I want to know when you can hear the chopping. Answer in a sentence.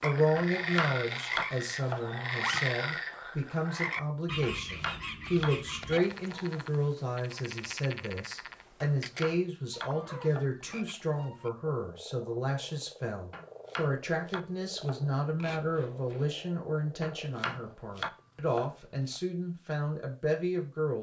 You can hear the chopping from 0.3 to 2.0 s, from 4.4 to 6.6 s, from 8.8 to 11.0 s, from 13.3 to 15.1 s and from 17.0 to 19.2 s.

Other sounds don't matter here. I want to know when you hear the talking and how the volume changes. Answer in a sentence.
The talking can be heard from 0.0 to 20.9 s, at a steady volume.